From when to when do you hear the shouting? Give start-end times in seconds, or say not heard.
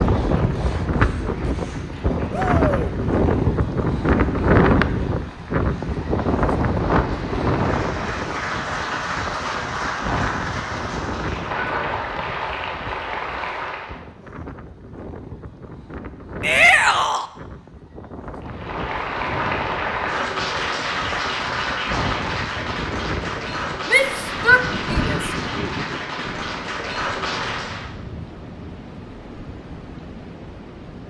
2.3-2.9, 16.4-17.2, 23.9-25.3.